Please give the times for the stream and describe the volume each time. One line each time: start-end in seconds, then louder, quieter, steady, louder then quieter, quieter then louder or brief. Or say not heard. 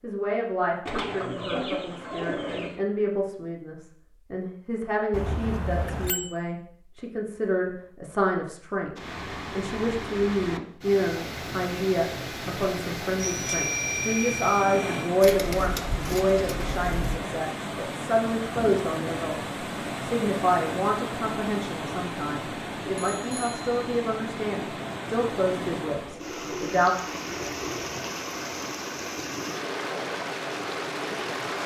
8.9-31.6 steady.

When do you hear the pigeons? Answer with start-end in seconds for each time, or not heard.
0.8-2.8, 15.2-17.2, 26.0-27.9.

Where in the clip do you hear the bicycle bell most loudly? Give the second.
14 s.